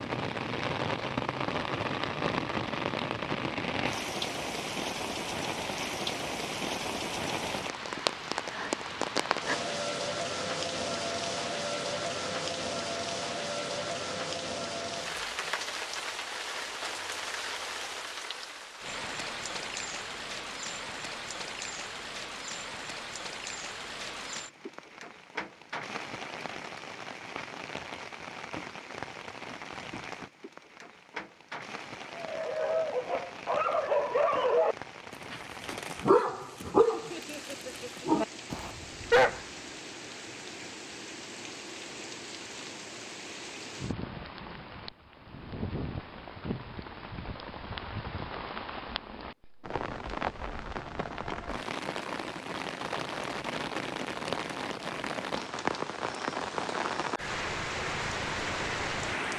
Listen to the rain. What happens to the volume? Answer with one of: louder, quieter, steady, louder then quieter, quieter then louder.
quieter then louder.